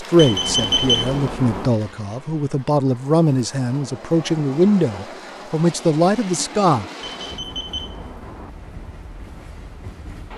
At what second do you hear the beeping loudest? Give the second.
1 s.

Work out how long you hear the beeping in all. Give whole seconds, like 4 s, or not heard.
3 s.